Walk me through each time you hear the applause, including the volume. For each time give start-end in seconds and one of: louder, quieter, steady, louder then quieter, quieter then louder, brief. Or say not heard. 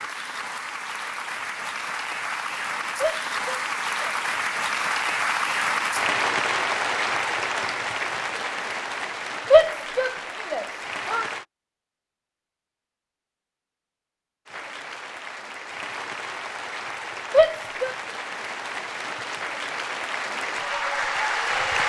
0.0-11.4 louder then quieter
14.4-21.8 louder.